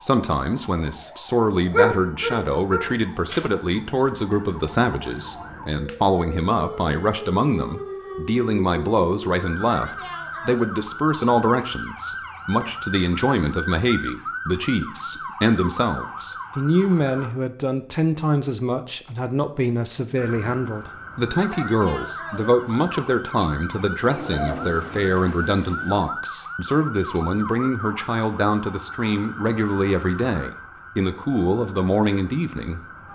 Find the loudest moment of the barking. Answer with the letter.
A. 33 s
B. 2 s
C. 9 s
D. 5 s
B.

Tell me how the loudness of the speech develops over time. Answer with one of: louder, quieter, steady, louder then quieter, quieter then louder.
steady.